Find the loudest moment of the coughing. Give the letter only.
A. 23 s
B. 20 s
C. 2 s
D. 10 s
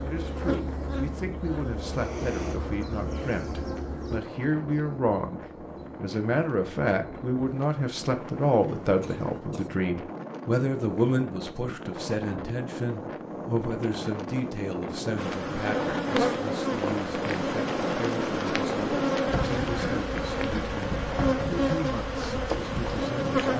B.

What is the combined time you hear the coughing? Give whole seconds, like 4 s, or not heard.
2 s.